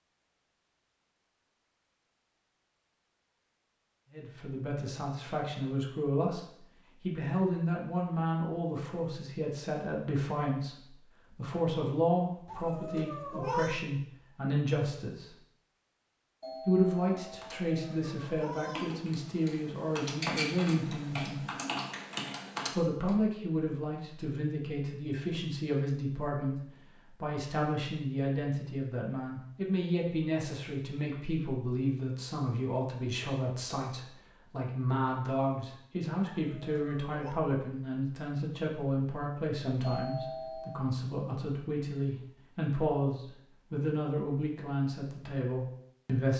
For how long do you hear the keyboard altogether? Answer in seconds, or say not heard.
6 s.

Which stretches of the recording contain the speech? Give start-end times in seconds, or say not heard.
4.1-15.3, 16.6-21.4, 22.7-46.3.